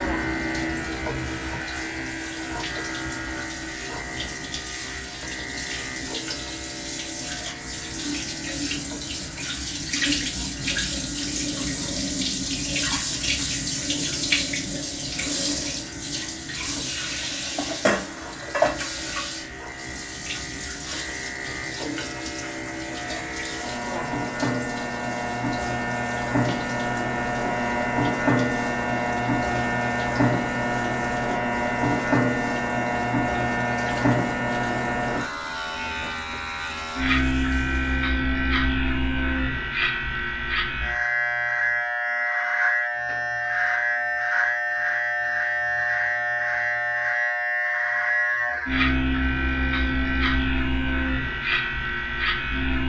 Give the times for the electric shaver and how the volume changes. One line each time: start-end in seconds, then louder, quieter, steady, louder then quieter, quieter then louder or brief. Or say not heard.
0.0-52.8 quieter then louder.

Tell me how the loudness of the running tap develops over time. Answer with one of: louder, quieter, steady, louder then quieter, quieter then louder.
louder then quieter.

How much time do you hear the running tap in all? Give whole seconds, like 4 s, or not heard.
38 s.